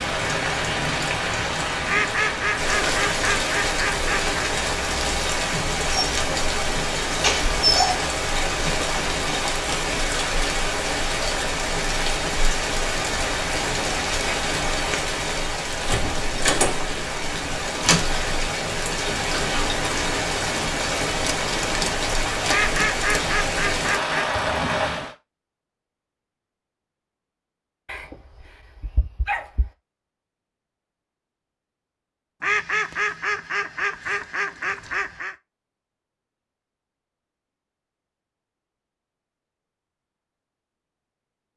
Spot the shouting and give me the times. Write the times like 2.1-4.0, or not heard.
not heard.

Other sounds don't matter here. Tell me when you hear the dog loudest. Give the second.
8 s.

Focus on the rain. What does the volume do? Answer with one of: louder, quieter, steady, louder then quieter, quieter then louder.
steady.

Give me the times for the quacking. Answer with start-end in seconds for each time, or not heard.
1.9-4.4, 22.4-24.2, 32.4-35.4.